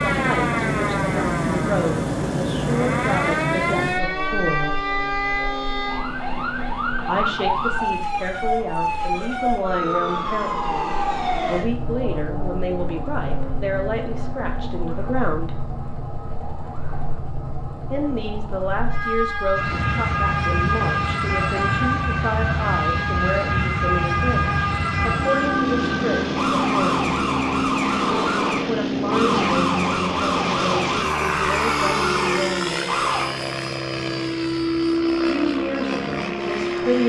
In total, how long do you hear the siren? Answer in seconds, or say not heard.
33 s.